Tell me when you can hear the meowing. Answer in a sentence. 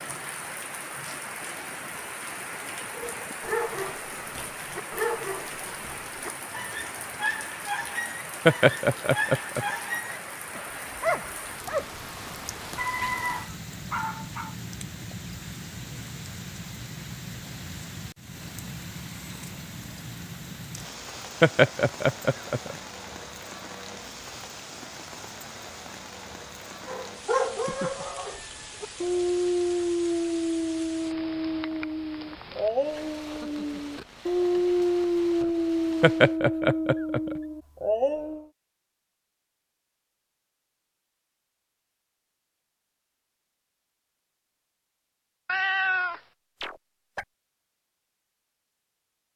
You can hear the meowing from 13.0 to 13.5 s, from 27.6 to 29.0 s and from 45.5 to 47.2 s.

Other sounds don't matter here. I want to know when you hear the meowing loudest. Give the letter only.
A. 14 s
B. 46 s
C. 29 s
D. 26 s
B.